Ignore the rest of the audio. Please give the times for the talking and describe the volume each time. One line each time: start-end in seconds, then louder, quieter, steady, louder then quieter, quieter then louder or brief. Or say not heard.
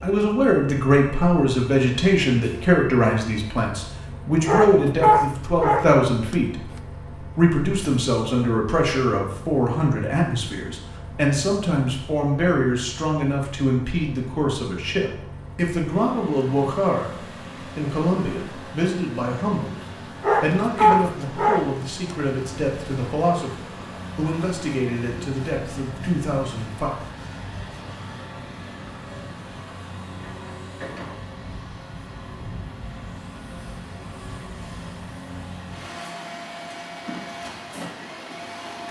0.0-26.9 quieter.